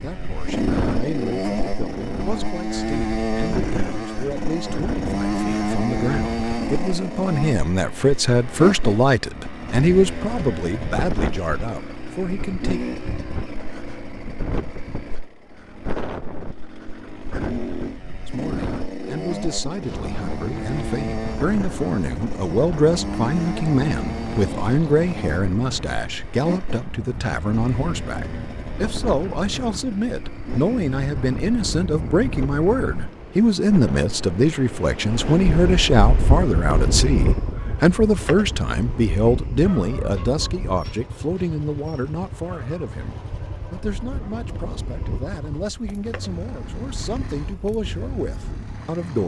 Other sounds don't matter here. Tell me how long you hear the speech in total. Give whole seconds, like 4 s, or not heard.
44 s.